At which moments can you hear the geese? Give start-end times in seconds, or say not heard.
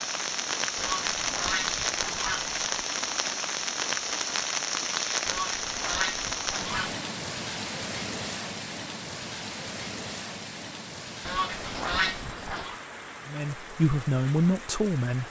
0.8-2.8, 5.2-7.0, 11.2-12.8.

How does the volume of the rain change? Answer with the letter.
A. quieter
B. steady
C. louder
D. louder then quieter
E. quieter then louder
A.